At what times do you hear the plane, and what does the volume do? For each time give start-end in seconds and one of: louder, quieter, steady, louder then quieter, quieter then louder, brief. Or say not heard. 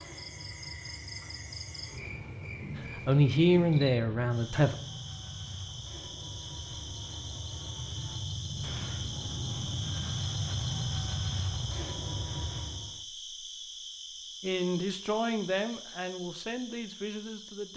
0.0-13.0 louder.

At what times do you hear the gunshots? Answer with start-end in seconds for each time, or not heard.
8.6-9.1.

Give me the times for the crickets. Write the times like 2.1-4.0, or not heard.
0.0-17.7.